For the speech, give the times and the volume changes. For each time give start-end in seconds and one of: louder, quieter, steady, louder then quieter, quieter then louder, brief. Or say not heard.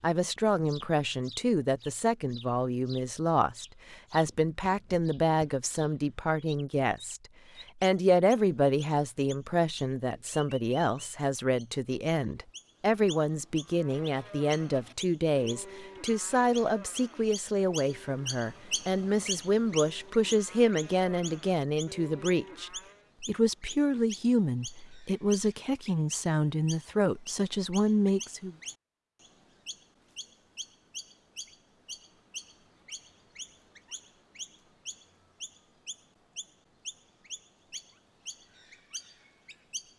0.0-7.2 steady
7.8-28.6 steady.